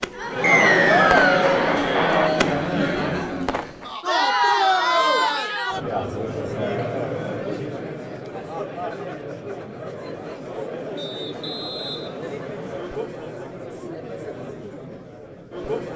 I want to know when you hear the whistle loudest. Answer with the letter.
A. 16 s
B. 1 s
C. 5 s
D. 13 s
B.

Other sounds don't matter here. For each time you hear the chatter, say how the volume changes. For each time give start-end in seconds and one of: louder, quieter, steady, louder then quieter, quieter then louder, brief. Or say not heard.
0.1-15.9 quieter.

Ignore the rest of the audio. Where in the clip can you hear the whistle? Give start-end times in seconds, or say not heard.
0.4-1.4, 10.9-13.0.